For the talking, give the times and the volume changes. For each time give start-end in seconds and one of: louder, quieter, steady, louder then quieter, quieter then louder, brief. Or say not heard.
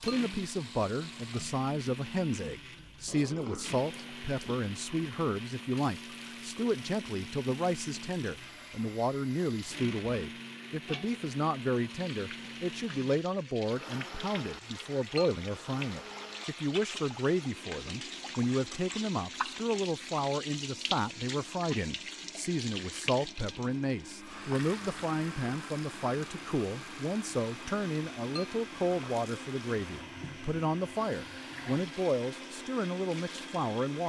0.0-34.0 steady.